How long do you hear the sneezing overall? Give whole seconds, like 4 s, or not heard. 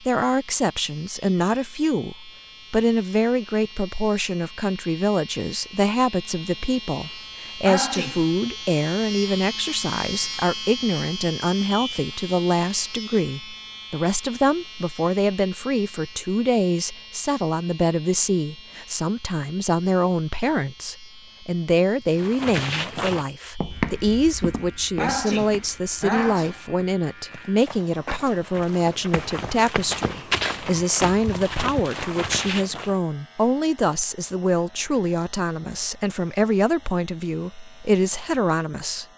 2 s.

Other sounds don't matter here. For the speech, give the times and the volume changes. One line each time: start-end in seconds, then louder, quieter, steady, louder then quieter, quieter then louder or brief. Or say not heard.
0.1-39.0 steady.